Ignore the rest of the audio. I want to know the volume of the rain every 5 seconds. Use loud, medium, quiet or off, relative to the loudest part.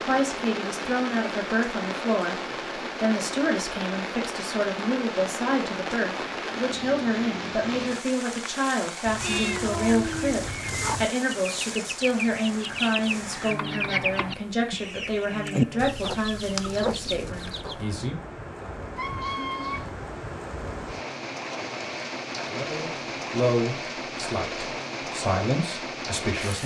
loud, loud, medium, medium, loud, loud.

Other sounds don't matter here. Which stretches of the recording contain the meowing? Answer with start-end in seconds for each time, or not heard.
9.1-11.1, 18.9-19.9.